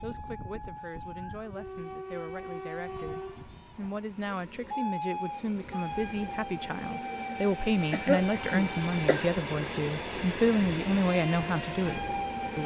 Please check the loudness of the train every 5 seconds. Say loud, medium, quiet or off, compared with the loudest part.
medium, loud, loud.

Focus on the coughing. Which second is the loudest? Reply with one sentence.
The loudest moment of the coughing is at 8 seconds.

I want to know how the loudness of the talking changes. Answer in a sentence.
The volume of the talking goes up.